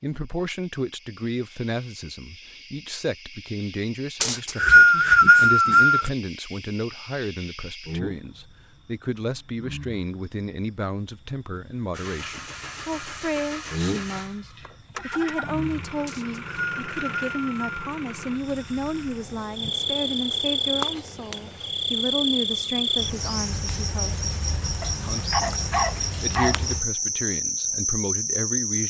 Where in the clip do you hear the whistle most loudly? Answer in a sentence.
The loudest moment of the whistle is at 5 seconds.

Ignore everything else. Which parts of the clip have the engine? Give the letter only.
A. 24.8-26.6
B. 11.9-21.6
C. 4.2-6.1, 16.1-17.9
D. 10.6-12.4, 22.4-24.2
B.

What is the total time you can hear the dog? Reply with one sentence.
You can hear the dog for 2 seconds altogether.